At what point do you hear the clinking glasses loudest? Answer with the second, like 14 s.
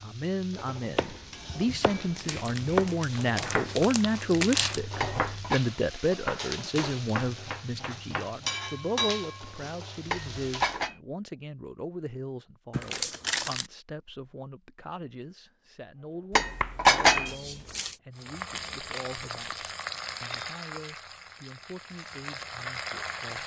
17 s.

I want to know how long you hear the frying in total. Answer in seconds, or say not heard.
16 s.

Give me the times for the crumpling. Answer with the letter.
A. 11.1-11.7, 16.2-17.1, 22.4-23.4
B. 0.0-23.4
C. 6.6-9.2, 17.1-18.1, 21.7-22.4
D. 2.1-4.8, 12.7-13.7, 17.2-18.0
D.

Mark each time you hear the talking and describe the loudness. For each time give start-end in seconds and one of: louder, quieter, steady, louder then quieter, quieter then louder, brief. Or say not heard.
0.0-23.4 quieter.